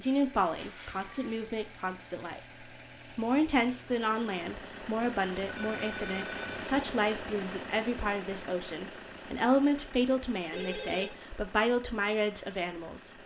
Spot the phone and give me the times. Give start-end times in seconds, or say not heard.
0.6-1.4, 5.5-6.6, 10.5-11.1.